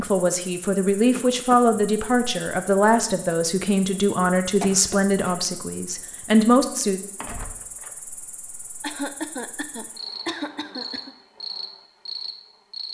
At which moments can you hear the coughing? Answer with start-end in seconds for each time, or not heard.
1.1-1.9, 4.6-5.6, 8.8-11.1.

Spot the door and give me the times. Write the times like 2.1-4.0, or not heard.
7.2-8.0.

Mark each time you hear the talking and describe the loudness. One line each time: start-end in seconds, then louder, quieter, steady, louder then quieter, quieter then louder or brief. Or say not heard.
0.0-7.0 steady.